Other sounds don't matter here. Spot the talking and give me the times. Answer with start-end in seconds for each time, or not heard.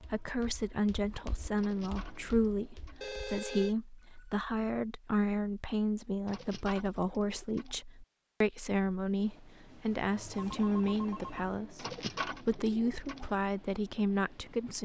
0.0-14.8.